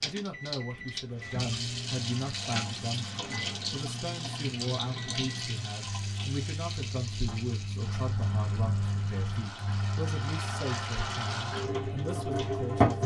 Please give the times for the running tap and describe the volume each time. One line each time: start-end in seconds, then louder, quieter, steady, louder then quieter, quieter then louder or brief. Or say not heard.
0.0-13.0 quieter then louder.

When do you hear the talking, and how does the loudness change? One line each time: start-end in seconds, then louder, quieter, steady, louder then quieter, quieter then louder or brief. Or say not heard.
0.0-12.9 steady.